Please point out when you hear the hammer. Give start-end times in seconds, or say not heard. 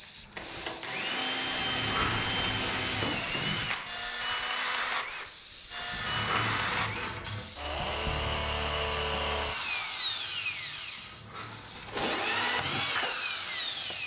not heard.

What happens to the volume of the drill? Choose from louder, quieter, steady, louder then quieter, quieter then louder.
steady.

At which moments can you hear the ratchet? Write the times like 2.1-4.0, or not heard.
1.6-3.1, 5.9-7.5, 10.9-12.5.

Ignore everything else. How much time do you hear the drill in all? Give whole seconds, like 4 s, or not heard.
14 s.